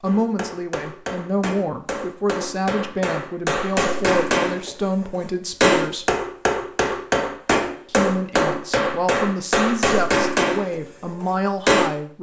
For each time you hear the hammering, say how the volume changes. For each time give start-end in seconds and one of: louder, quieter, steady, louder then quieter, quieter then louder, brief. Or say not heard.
0.1-11.9 louder.